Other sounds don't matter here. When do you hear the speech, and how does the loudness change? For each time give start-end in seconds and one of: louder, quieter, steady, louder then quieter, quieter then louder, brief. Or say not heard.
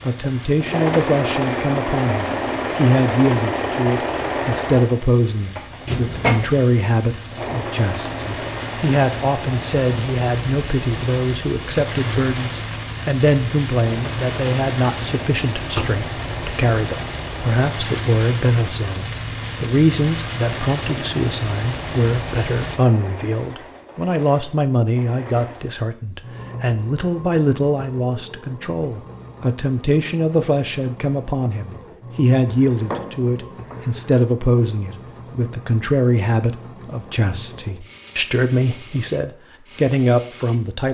0.0-40.8 steady.